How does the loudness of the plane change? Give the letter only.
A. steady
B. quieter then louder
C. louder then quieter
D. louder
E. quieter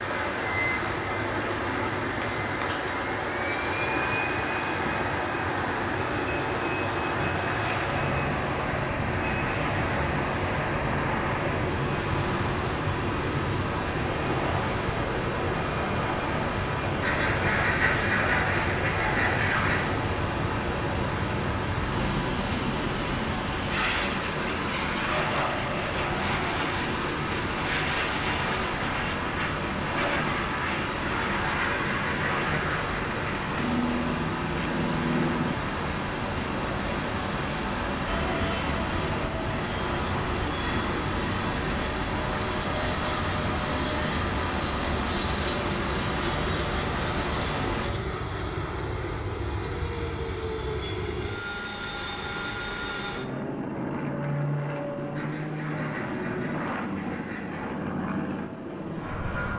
A.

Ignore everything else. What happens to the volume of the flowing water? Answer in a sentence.
The loudness of the flowing water stays about the same.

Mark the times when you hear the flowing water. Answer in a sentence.
You can hear the flowing water from 0.0 to 47.9 s.